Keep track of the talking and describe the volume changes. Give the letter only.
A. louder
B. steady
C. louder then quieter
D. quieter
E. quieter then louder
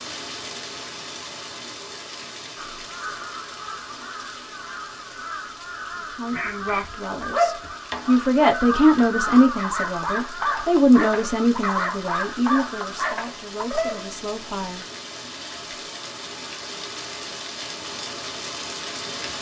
C.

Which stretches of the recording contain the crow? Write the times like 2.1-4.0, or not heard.
2.5-13.1.